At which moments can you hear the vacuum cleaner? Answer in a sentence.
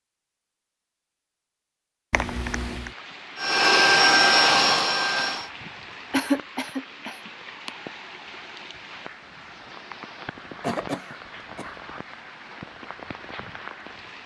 You can hear the vacuum cleaner from 3.4 to 5.5 s.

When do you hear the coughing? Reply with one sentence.
The coughing can be heard from 2.1 to 2.9 s, from 6.1 to 7.7 s and from 10.6 to 11.8 s.